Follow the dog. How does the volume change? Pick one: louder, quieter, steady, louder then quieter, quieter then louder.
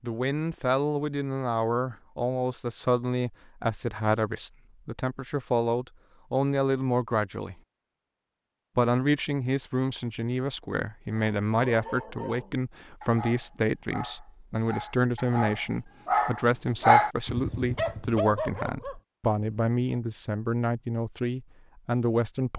louder then quieter.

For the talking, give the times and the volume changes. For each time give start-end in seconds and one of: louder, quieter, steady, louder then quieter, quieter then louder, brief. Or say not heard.
0.0-7.5 steady
8.8-22.5 steady.